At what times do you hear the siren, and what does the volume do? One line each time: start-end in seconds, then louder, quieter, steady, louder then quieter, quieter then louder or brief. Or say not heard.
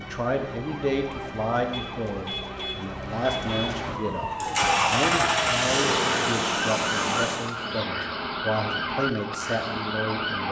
0.0-10.4 louder.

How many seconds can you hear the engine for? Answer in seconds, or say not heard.
3 s.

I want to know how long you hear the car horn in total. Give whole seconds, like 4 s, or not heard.
2 s.